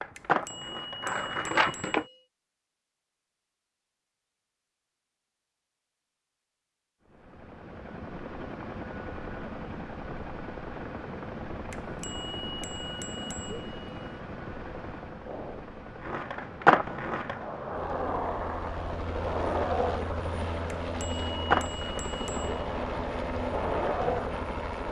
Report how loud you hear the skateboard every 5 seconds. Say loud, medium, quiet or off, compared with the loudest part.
loud, off, off, loud, loud.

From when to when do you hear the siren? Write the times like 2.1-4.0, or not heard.
not heard.